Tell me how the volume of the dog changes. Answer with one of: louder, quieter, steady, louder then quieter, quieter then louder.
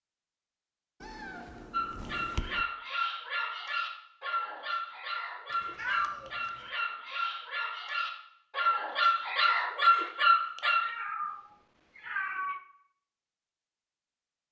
louder.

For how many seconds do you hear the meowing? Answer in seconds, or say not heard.
5 s.